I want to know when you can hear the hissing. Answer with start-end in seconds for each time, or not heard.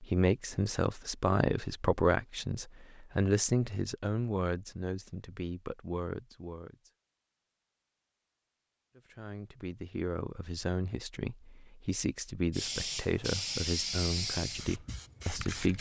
12.5-15.7.